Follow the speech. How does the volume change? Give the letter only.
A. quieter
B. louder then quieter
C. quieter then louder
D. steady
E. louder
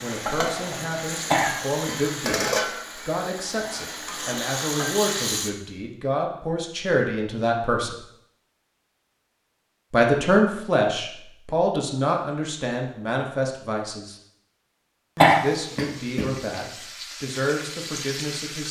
B.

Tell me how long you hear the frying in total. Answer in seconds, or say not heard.
9 s.